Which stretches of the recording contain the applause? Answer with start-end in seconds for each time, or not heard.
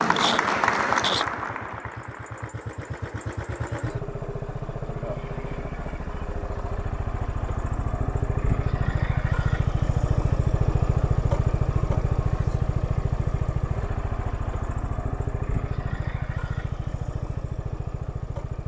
0.0-2.5.